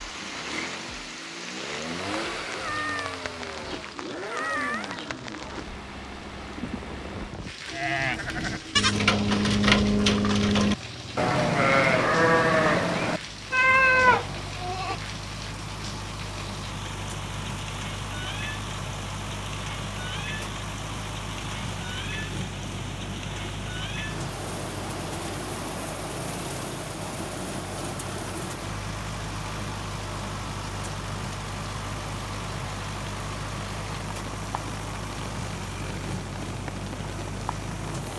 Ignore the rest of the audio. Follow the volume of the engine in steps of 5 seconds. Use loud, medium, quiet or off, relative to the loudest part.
loud, medium, medium, loud, loud, loud, loud, loud.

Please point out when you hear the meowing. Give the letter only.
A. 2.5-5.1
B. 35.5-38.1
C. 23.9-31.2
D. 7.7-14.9
A.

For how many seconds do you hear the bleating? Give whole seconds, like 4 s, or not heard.
7 s.